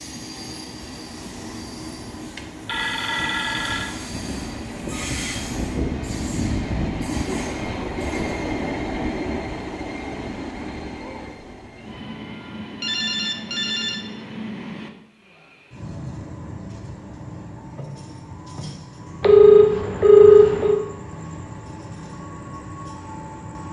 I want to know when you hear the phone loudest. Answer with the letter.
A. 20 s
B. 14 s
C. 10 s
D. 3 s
A.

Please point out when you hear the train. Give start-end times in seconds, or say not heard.
0.0-23.6.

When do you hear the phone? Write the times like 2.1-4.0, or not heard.
2.4-4.0, 12.8-14.1, 19.2-20.8.